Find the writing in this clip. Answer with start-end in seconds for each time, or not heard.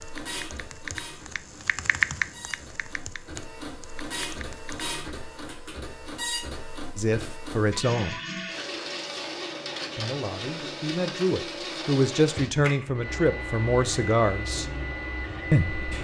not heard.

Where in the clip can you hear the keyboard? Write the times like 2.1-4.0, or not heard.
0.0-4.8.